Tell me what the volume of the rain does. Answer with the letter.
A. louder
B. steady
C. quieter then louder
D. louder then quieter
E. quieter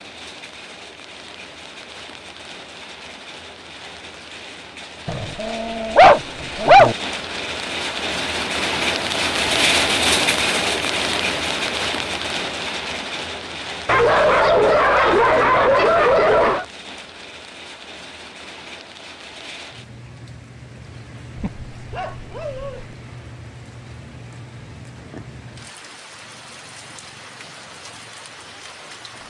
D.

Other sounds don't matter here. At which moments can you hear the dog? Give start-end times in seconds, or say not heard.
5.0-7.0, 13.8-16.6, 21.4-22.9.